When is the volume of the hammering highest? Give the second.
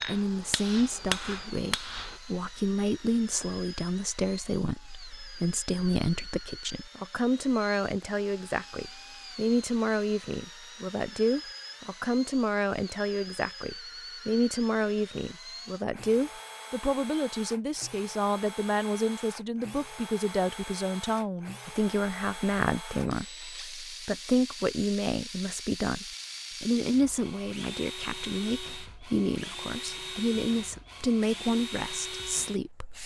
1 s.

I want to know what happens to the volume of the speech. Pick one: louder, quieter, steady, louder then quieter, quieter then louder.
steady.